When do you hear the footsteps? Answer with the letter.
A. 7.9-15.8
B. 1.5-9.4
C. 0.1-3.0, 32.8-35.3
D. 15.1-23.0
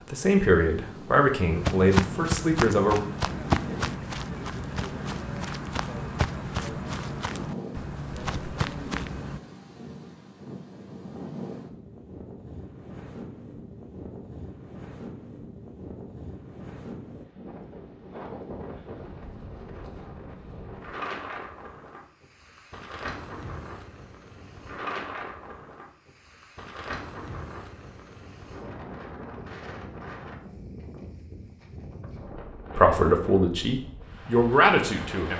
B.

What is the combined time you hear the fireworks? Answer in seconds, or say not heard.
not heard.